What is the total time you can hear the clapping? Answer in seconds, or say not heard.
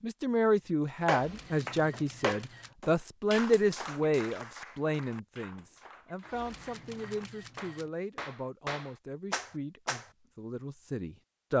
9 s.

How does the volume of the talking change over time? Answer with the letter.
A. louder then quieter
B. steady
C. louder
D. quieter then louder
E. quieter
E.